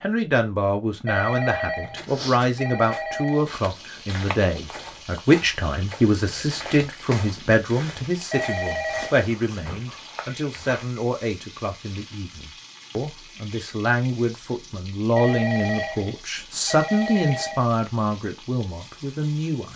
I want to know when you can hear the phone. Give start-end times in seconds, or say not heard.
1.1-3.5, 8.3-9.2, 15.2-17.6.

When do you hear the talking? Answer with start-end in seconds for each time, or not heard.
0.0-19.7.